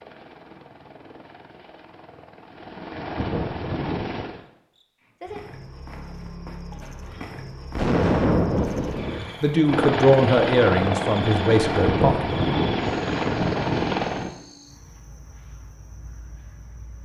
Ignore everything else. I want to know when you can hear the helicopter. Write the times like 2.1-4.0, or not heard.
0.0-4.5, 8.6-14.3.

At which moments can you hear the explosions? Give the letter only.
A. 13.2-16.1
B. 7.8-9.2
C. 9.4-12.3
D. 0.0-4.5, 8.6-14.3
B.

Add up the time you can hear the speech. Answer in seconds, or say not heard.
3 s.